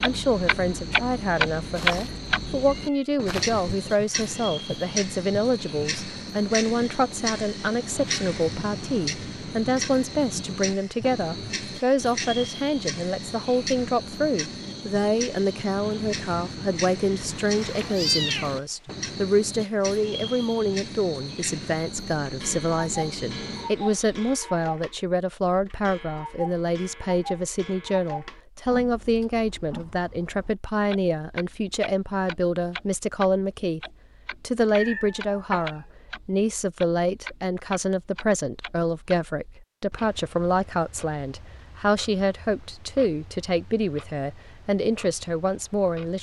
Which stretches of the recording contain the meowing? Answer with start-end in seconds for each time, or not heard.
1.8-3.6, 17.2-18.6, 34.6-35.9.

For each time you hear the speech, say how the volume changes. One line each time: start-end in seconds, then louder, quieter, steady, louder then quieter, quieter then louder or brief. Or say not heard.
0.0-33.8 steady
34.4-46.1 steady.